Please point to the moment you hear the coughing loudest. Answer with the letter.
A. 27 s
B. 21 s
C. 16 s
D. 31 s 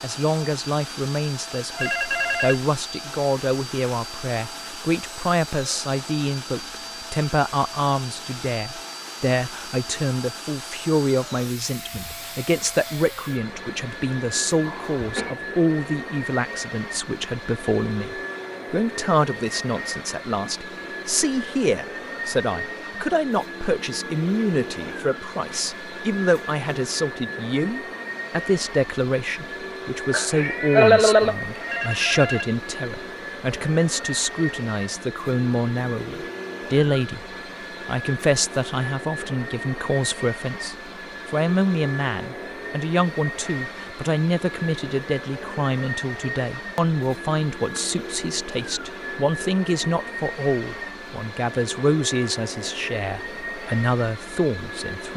D.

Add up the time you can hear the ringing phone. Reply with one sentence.
You can hear the ringing phone for 2 seconds altogether.